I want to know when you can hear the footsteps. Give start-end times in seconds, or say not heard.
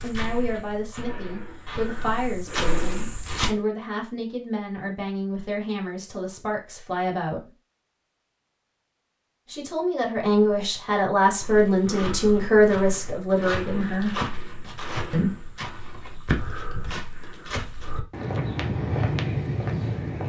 0.0-3.5, 11.4-20.2.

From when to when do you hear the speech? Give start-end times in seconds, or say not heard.
0.0-7.5, 9.4-14.2, 15.1-15.6.